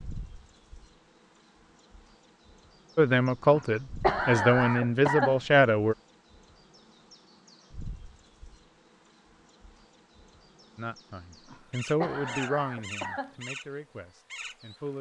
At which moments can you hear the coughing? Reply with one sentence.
You can hear the coughing from 3.5 to 5.4 s and from 11.5 to 13.3 s.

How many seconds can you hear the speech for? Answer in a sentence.
The speech can be heard for 7 seconds in total.